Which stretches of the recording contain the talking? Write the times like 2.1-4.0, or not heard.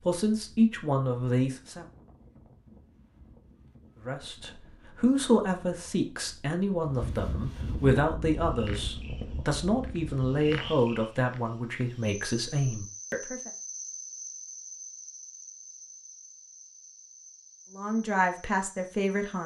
0.1-1.9, 4.0-13.5, 17.7-19.4.